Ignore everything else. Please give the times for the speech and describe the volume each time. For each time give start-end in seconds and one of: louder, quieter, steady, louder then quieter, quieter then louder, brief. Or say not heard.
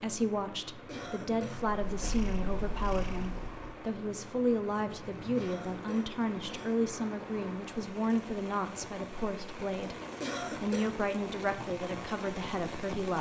0.0-13.1 steady.